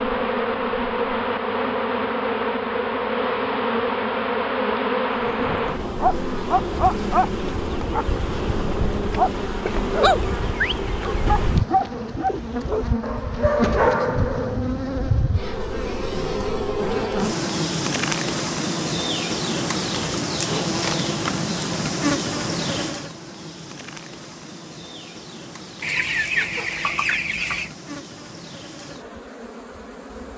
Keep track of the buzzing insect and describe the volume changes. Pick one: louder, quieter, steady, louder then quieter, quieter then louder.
quieter.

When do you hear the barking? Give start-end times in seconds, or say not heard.
5.2-14.6.